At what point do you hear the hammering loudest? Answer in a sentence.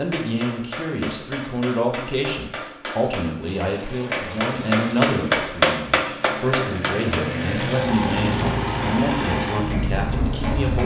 The volume of the hammering peaks at 5 seconds.